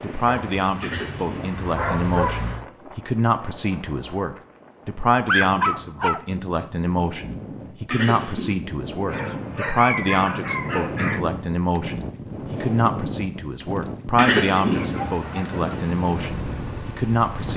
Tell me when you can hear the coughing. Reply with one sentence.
The coughing can be heard from 0.8 to 1.6 s, from 7.9 to 8.7 s and from 14.2 to 14.9 s.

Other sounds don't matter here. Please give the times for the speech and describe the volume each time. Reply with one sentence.
The speech can be heard from 0.0 to 17.5 s, at a steady volume.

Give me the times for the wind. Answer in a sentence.
The wind can be heard from 0.0 to 17.5 s.